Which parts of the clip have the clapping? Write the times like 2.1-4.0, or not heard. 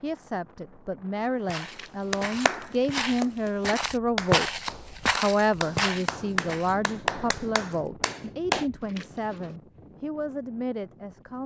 2.1-8.7.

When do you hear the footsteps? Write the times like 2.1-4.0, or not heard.
1.4-6.8.